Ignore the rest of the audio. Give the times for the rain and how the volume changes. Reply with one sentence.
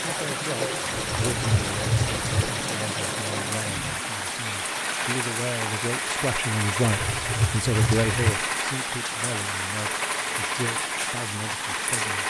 You can hear the rain from 0.0 to 12.2 s, at a steady volume.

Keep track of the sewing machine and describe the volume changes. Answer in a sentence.
The volume of the sewing machine stays about the same.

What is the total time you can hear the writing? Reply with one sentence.
You can hear the writing for 3 seconds altogether.